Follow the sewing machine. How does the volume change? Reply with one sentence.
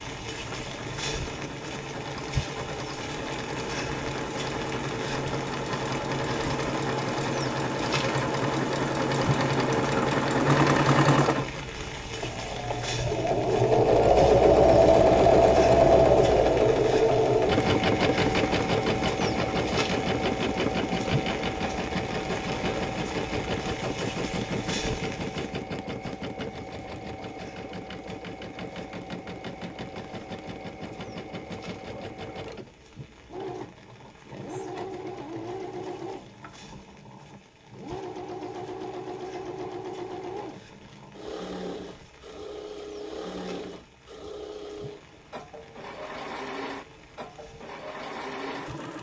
The loudness of the sewing machine goes up, then down.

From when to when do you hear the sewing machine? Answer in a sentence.
You can hear the sewing machine from 0.0 to 48.9 s.